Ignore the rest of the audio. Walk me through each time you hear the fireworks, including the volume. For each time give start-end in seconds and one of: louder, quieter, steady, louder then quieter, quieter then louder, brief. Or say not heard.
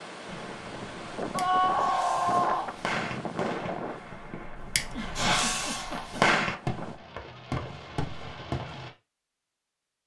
0.2-8.9 louder then quieter.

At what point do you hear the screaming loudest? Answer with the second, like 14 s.
2 s.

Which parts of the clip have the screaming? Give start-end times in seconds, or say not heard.
1.3-2.7, 5.5-6.1.